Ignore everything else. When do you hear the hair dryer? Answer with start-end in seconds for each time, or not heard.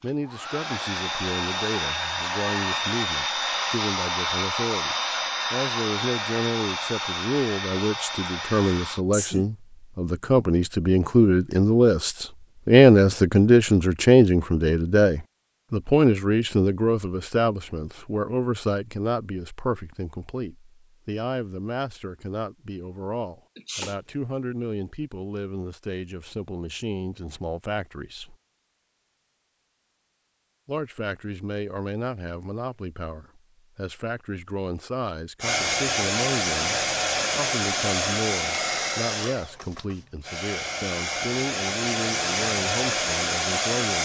0.0-9.1, 35.4-44.0.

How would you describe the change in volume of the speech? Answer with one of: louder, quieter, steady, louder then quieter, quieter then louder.
louder then quieter.